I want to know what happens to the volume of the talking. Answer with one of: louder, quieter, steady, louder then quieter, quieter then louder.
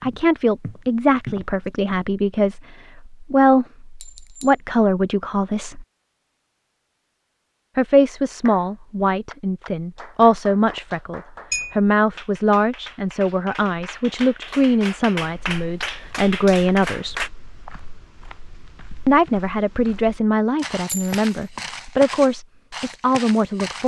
steady.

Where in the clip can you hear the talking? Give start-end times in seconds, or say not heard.
0.0-5.8, 7.8-17.2, 19.1-23.8.